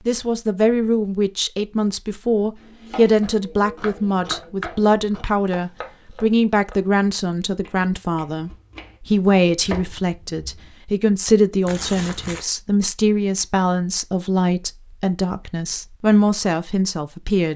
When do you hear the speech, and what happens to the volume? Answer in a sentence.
You can hear the speech from 0.1 to 17.5 s, at a steady volume.